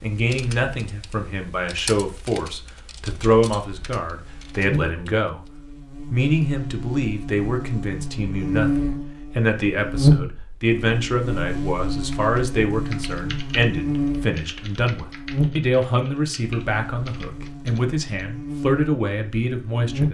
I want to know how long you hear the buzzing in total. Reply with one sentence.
You can hear the buzzing for 16 seconds altogether.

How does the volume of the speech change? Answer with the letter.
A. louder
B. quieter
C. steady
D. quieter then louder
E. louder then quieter
C.